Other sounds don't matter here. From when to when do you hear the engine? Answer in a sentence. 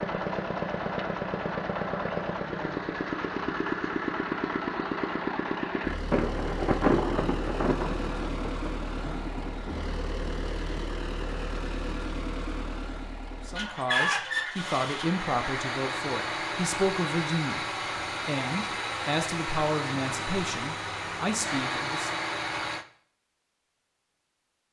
You can hear the engine from 0.0 to 22.9 s.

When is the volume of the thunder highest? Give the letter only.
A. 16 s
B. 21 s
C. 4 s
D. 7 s
D.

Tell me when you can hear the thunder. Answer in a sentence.
The thunder can be heard from 6.1 to 9.8 s.